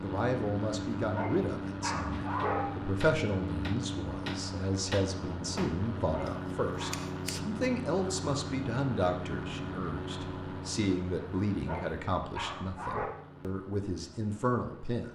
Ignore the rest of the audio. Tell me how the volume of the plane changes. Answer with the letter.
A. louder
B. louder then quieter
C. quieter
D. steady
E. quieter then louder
C.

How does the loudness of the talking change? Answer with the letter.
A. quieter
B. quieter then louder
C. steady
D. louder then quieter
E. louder
C.